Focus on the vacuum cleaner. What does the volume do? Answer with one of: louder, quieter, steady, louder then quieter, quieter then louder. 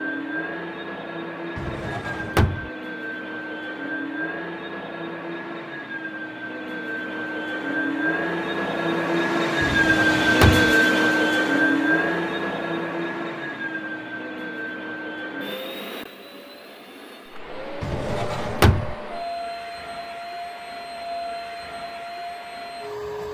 louder then quieter.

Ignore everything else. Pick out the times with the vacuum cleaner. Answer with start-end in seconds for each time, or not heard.
0.0-23.2.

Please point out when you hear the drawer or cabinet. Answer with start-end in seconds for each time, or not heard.
1.6-2.7, 9.6-10.8, 17.8-18.9.